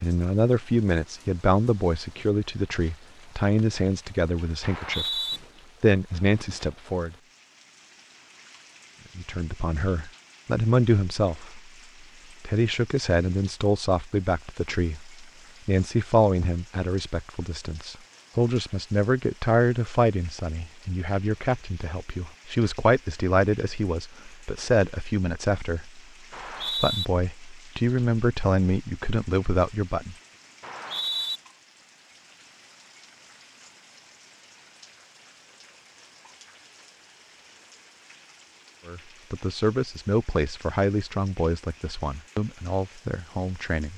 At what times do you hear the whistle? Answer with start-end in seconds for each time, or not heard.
4.6-5.4, 26.3-27.1, 30.6-31.4.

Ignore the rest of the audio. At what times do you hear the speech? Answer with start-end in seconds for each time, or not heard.
0.0-5.2, 5.8-7.2, 9.2-11.6, 12.4-26.0, 26.8-30.1, 38.9-43.9.